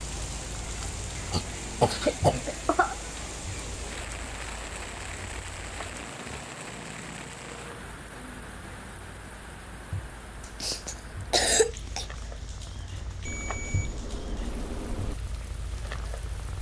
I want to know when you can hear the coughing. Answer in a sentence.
You can hear the coughing from 1.3 to 3.0 s and from 10.4 to 12.1 s.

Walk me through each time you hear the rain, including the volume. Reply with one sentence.
You can hear the rain from 0.0 to 16.5 s, getting quieter.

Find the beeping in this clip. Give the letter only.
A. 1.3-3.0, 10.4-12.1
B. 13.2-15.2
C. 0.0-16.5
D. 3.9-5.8
B.